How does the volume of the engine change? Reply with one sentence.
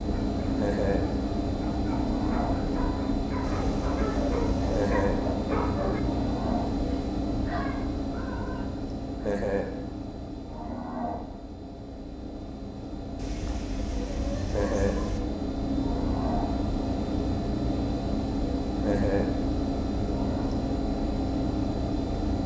The loudness of the engine goes down, then up.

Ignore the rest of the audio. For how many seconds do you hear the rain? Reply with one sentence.
You can't hear the rain here.